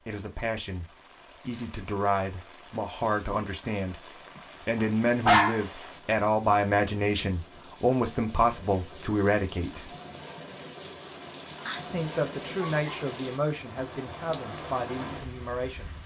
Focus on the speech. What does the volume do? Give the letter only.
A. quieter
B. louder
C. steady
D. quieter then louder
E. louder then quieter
E.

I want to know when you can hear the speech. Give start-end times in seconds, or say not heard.
0.0-9.9, 11.9-16.0.